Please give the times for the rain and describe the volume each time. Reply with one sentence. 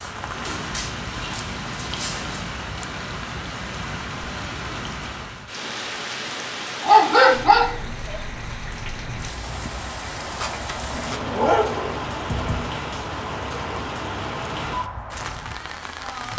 You can hear the rain from 0.0 to 16.3 s, at a steady volume.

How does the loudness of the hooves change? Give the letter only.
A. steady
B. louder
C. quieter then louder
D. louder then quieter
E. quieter
A.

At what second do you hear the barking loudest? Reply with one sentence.
The volume of the barking peaks at 7 seconds.